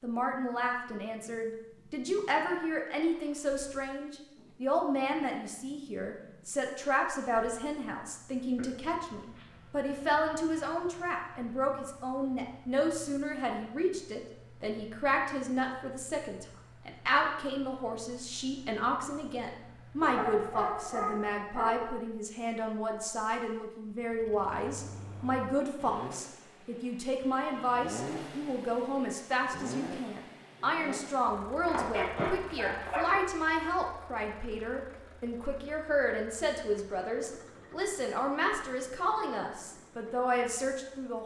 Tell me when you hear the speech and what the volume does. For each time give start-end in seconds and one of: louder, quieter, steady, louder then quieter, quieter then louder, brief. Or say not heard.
0.0-41.2 steady.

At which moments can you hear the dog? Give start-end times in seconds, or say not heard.
8.6-11.2, 20.0-21.9, 31.6-33.2.